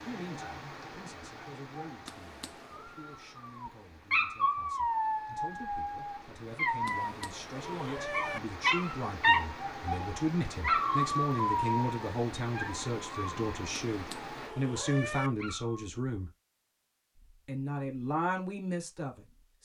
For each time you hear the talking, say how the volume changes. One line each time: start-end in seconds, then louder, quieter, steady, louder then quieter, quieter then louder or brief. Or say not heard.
0.0-16.3 louder
17.4-19.6 brief.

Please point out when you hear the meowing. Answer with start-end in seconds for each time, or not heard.
2.0-2.9, 6.8-8.4, 13.9-15.3.